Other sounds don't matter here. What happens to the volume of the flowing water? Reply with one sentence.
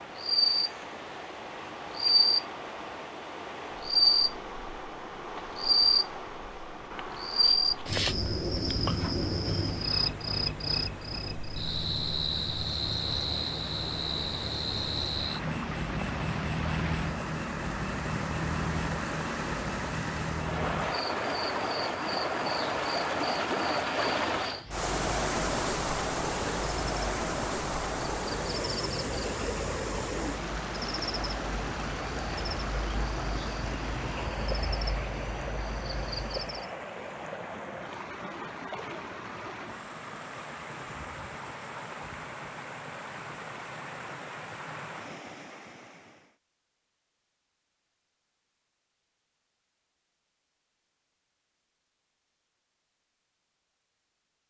The loudness of the flowing water goes up, then down.